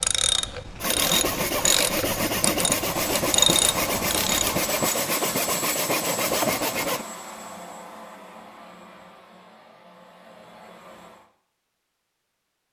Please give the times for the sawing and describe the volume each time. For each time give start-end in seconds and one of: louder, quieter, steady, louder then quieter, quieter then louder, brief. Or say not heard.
0.8-7.0 steady.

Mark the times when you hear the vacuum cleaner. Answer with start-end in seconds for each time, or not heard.
2.9-11.3.